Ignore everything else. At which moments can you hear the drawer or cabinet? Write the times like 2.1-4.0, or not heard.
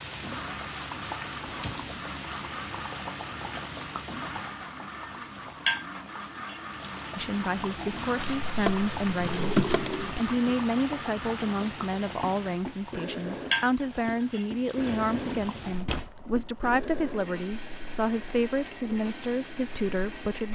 1.4-2.0, 9.1-10.6, 14.8-16.1.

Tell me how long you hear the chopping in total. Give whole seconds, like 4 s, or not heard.
2 s.